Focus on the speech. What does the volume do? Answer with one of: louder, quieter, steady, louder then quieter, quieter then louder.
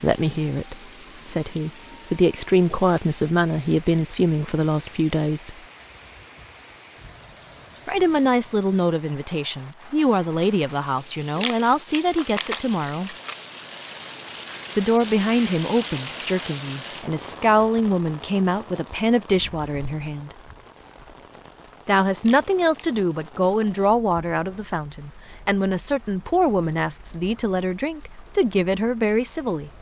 steady.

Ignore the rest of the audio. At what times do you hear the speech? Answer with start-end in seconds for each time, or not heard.
0.0-5.5, 7.8-13.2, 14.8-20.4, 21.9-29.7.